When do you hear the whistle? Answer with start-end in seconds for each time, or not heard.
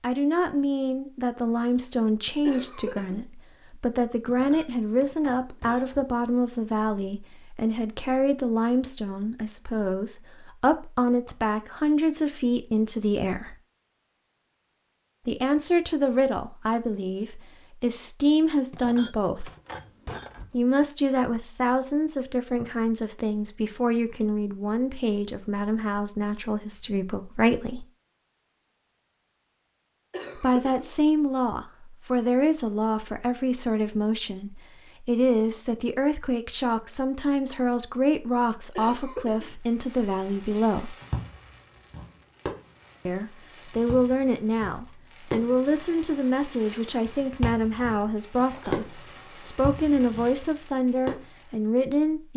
not heard.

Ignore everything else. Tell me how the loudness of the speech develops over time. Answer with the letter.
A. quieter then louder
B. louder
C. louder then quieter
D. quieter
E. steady
E.